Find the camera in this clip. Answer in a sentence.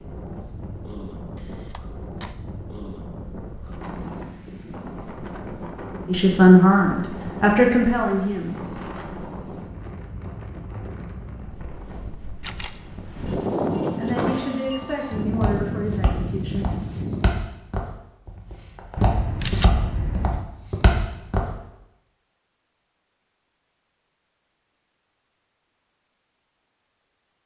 The camera can be heard from 1.4 to 2.4 s, from 12.4 to 12.8 s and from 18.9 to 20.5 s.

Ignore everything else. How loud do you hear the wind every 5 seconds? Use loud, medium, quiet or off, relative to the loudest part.
medium, medium, loud, loud, off, off.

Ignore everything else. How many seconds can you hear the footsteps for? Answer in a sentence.
You can hear the footsteps for 7 seconds altogether.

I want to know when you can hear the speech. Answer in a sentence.
You can hear the speech from 6.0 to 8.6 s and from 13.9 to 16.6 s.